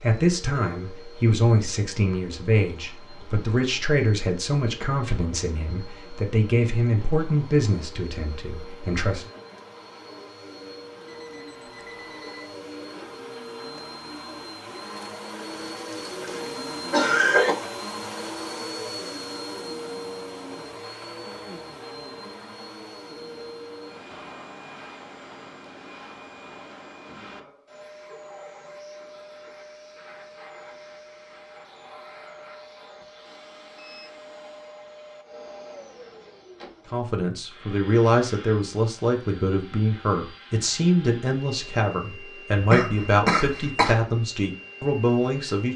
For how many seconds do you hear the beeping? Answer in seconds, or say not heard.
3 s.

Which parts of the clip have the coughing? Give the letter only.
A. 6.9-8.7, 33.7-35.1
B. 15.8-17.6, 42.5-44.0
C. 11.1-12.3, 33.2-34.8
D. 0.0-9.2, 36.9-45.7
B.